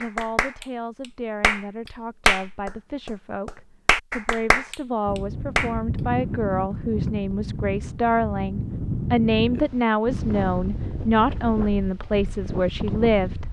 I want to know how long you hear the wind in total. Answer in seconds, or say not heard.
8 s.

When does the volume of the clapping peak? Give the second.
2 s.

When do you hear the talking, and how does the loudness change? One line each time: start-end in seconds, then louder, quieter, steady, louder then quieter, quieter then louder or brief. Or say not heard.
0.0-13.4 louder.